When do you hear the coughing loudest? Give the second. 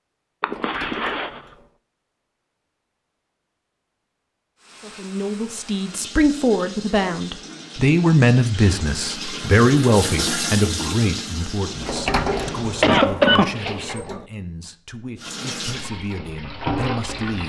13 s.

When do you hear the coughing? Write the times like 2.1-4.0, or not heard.
0.4-1.4, 12.3-13.9.